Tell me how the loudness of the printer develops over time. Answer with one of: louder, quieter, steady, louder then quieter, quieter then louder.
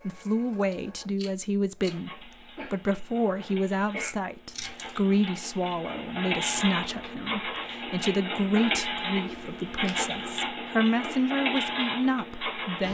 louder.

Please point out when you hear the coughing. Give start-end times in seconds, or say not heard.
2.5-4.1.